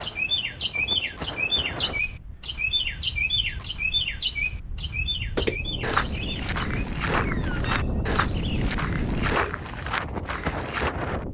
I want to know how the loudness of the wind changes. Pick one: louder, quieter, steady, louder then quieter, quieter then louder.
quieter then louder.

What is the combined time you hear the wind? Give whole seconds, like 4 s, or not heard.
11 s.